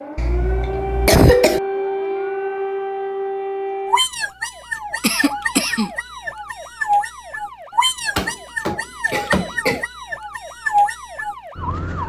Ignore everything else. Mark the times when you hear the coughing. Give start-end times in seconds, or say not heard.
0.1-1.6, 5.0-5.9, 8.2-9.8.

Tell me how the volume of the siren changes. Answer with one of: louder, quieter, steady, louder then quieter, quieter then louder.
steady.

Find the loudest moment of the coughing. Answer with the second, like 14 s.
1 s.